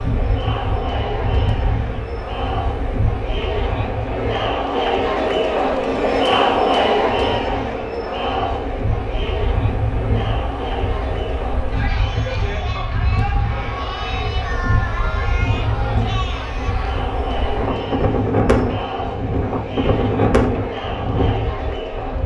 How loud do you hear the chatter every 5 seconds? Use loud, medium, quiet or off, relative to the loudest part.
medium, loud, medium, medium, medium.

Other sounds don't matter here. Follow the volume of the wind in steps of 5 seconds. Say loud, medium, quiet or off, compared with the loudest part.
medium, medium, medium, loud, loud.